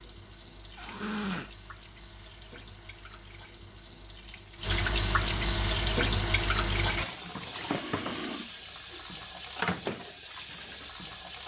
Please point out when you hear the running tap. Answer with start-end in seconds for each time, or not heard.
0.0-11.4.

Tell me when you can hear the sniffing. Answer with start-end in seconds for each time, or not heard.
0.8-1.5, 7.6-9.1.